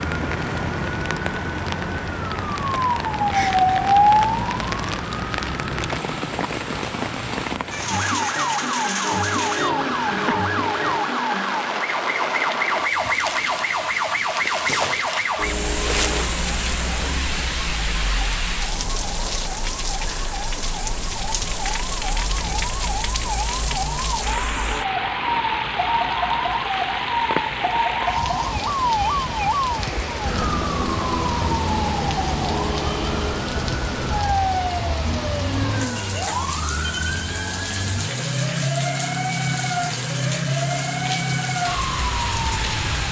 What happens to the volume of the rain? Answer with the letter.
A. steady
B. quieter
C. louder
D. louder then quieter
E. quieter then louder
A.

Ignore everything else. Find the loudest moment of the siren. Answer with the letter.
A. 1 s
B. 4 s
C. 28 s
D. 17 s
B.